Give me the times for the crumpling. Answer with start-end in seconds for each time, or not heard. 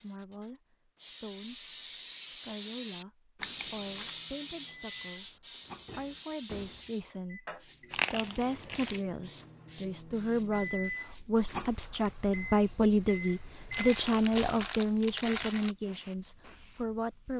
3.4-4.2, 7.9-9.0, 13.7-15.8.